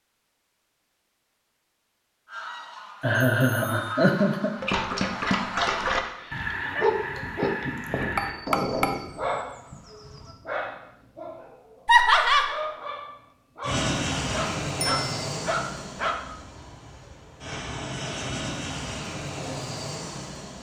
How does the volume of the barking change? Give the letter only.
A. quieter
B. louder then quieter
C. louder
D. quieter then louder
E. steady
D.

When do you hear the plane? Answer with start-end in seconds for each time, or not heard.
13.6-20.5.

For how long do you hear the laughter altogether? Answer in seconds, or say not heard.
2 s.